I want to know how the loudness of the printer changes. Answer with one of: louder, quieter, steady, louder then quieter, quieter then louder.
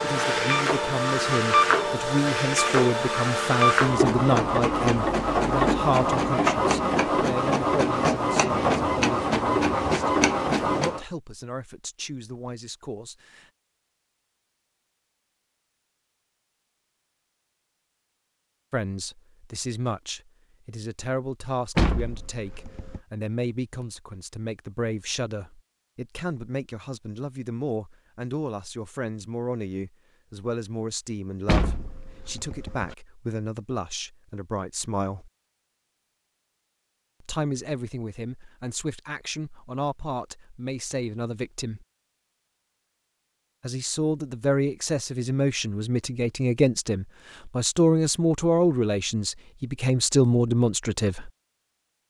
steady.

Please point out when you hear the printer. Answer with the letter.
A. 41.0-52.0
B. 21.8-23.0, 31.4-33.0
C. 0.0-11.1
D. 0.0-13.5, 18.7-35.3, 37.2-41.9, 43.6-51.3
C.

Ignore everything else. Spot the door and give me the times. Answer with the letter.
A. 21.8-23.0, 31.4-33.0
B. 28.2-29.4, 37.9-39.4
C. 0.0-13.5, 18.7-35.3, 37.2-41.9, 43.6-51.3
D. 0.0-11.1
A.